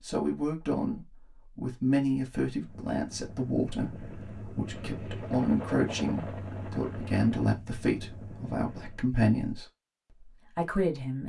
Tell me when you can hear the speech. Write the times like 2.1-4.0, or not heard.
0.0-9.7, 10.6-11.2.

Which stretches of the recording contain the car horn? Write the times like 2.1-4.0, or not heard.
not heard.